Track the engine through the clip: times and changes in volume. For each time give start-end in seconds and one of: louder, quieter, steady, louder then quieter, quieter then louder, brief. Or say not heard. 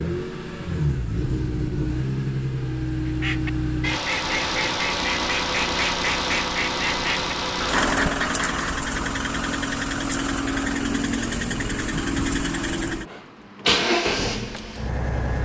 0.0-15.4 steady.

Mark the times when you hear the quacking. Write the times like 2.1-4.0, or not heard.
3.0-8.8.